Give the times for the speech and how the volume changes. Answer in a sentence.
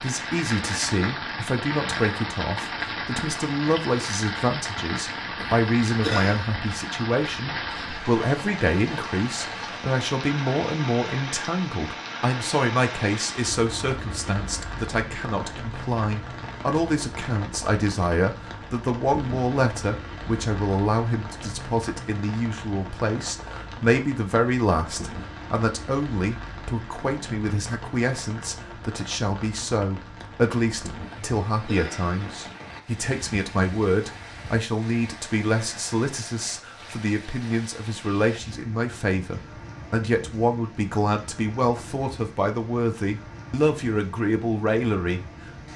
You can hear the speech from 0.0 to 45.7 s, at a steady volume.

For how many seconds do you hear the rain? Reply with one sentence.
You can hear the rain for 46 seconds altogether.